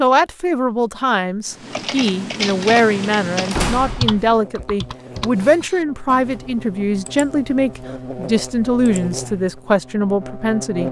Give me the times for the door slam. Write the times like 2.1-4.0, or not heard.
3.5-4.4.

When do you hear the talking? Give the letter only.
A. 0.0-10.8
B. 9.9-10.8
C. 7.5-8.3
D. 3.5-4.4
A.